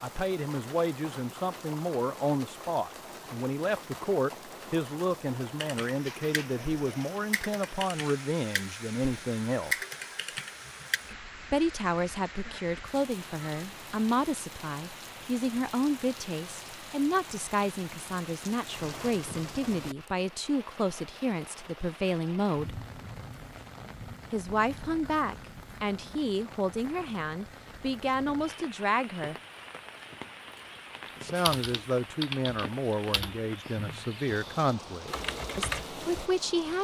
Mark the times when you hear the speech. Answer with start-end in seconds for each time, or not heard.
0.0-9.8, 11.5-22.8, 24.3-29.4, 31.1-36.7.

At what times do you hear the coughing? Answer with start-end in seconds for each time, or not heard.
not heard.